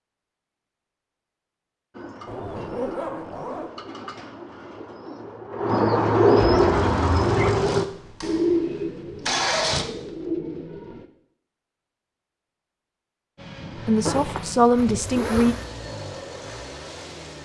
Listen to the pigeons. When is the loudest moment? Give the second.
6 s.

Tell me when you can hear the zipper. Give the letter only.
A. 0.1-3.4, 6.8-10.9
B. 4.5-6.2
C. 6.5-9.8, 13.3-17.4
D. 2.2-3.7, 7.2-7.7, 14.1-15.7
D.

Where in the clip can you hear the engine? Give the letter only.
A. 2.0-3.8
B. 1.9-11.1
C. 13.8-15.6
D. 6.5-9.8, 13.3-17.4
D.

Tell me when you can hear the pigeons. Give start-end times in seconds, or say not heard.
1.9-11.1.